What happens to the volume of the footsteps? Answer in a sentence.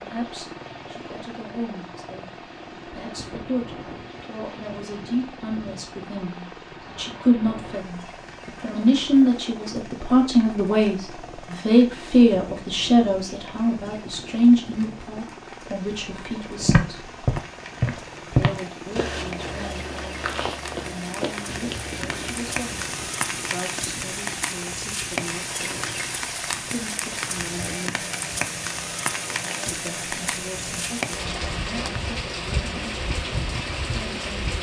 The loudness of the footsteps goes down.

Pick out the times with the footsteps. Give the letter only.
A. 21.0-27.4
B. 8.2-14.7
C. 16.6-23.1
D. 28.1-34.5
C.